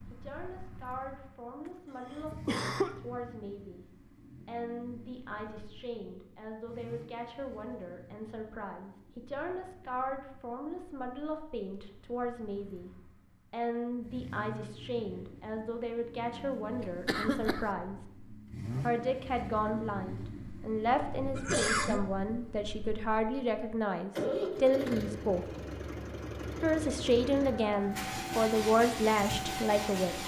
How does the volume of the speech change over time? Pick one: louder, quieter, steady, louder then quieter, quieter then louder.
louder.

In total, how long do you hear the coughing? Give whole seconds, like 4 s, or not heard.
3 s.